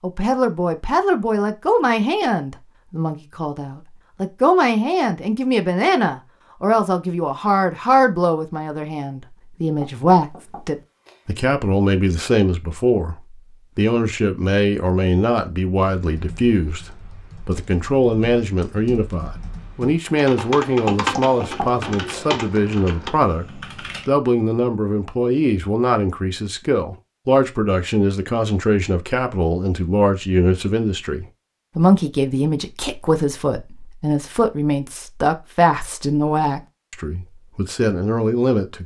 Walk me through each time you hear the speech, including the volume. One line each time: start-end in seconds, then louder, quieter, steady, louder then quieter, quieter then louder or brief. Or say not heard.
0.0-38.8 steady.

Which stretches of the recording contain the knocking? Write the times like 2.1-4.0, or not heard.
9.8-11.2, 20.9-22.3.